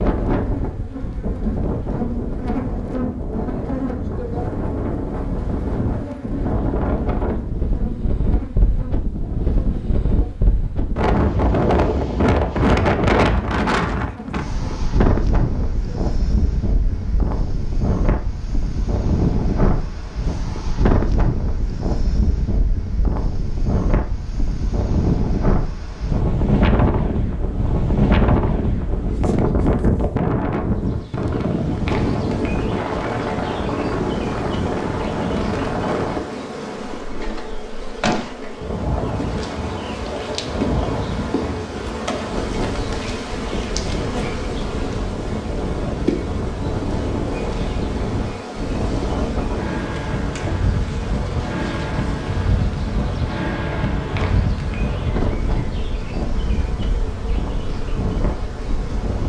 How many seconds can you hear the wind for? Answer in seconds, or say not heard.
59 s.